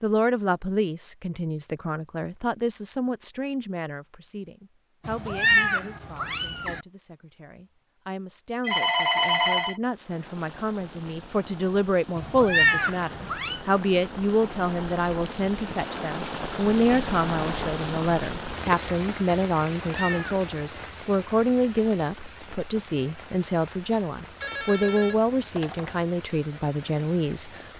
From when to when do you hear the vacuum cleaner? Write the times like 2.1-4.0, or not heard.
not heard.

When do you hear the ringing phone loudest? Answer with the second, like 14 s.
9 s.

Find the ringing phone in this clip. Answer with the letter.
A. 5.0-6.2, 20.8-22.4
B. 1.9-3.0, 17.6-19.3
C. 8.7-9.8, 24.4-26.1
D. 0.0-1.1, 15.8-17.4
C.